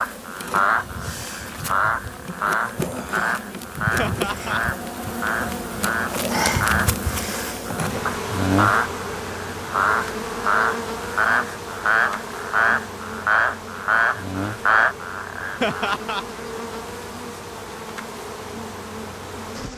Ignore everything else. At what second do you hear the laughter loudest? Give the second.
16 s.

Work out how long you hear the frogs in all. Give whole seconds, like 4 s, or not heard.
16 s.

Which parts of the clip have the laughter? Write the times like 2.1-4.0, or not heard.
4.0-4.6, 15.6-16.2.